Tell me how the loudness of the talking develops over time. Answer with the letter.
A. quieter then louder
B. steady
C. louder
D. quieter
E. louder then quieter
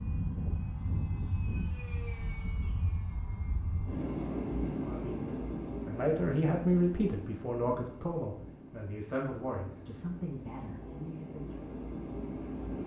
D.